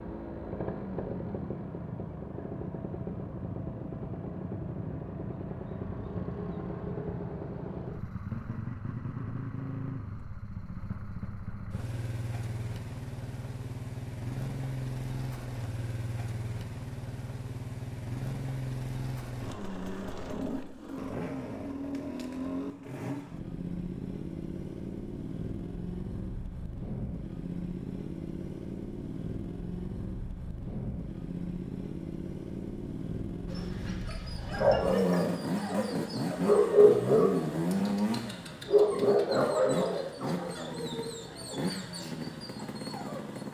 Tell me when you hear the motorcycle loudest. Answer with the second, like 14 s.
38 s.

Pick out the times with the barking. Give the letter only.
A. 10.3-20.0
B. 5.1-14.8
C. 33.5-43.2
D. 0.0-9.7
C.